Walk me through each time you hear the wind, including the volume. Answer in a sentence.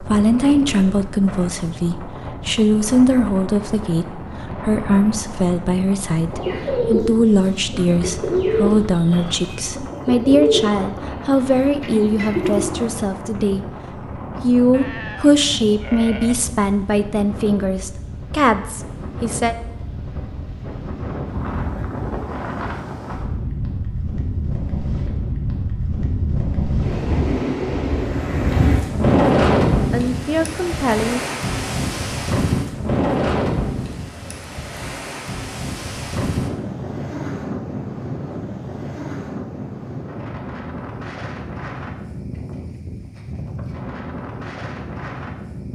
You can hear the wind from 0.0 to 45.6 s, getting louder then quieter.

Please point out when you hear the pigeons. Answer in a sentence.
You can hear the pigeons from 6.3 to 12.7 s.